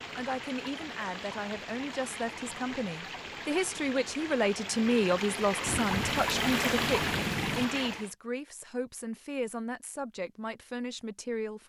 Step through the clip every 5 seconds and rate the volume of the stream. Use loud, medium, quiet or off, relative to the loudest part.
medium, loud, off.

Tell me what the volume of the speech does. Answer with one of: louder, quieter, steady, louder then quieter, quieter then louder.
louder then quieter.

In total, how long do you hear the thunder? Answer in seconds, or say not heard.
2 s.